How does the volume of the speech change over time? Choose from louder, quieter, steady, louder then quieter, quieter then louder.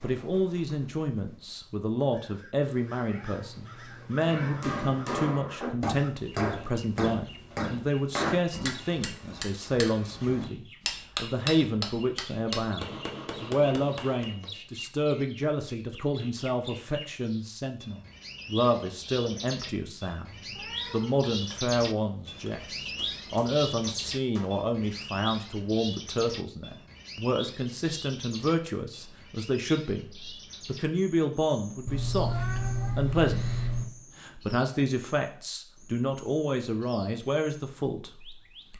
steady.